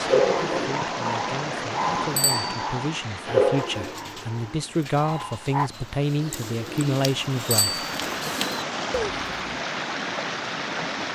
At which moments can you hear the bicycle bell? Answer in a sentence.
The bicycle bell can be heard from 2.1 to 2.6 s and from 7.5 to 8.0 s.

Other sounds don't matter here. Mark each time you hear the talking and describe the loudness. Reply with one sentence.
The talking can be heard from 0.0 to 8.3 s, getting louder.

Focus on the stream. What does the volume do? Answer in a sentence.
The volume of the stream goes down, then up.